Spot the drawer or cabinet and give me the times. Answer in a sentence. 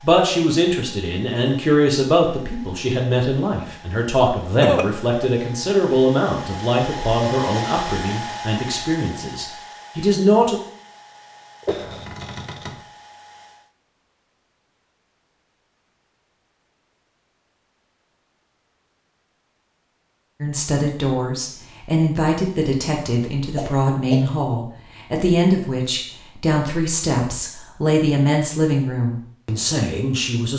You can hear the drawer or cabinet from 11.7 to 12.8 s.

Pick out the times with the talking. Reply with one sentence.
The talking can be heard from 0.0 to 10.6 s and from 20.4 to 30.5 s.